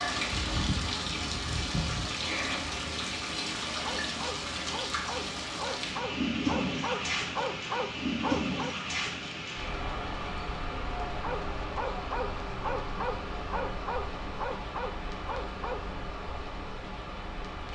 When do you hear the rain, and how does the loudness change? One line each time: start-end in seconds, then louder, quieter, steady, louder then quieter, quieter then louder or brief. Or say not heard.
0.0-17.7 quieter.